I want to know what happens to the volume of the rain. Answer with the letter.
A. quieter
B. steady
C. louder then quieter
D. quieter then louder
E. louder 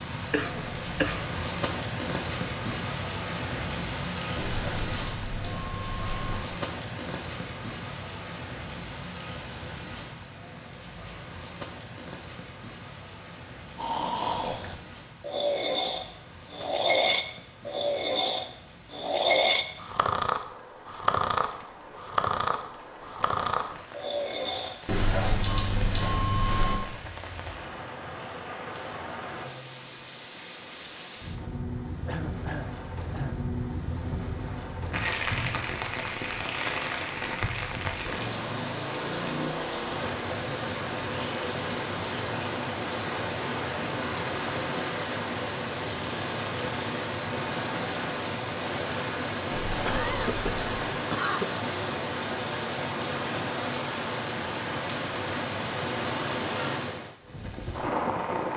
D.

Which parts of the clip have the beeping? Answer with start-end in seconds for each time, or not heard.
4.3-6.4, 24.9-26.8, 49.5-50.9.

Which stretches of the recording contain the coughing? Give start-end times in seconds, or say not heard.
0.3-1.2, 32.0-33.4, 49.9-51.6.